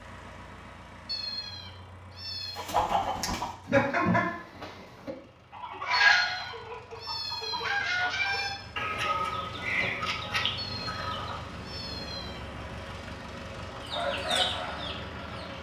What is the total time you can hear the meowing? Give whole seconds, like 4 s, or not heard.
6 s.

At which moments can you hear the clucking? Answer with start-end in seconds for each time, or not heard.
2.5-11.4, 13.8-15.5.